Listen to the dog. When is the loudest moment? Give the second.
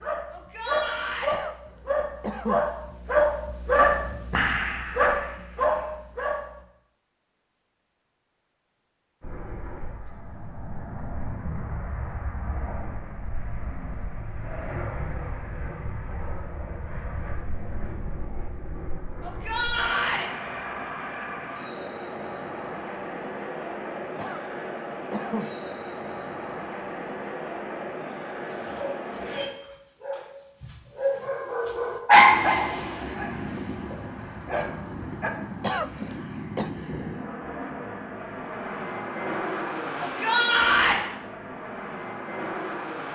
32 s.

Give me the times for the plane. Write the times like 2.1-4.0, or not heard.
9.2-29.5, 32.1-43.0.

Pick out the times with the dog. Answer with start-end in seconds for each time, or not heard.
0.0-6.6, 28.4-35.3.